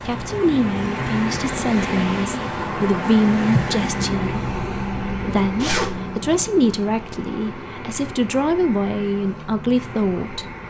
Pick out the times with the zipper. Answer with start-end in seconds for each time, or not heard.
5.5-6.0.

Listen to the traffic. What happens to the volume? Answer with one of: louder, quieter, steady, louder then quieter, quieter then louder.
quieter.